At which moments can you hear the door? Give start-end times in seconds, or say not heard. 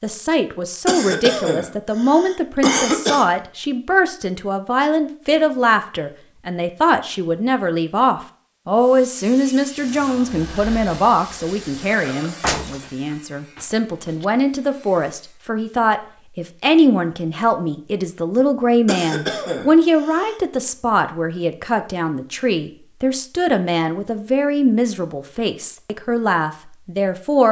12.4-14.2.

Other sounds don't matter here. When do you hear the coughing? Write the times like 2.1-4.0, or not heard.
0.8-3.2, 18.9-20.4.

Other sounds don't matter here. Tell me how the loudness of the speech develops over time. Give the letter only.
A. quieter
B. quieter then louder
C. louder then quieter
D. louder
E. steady
E.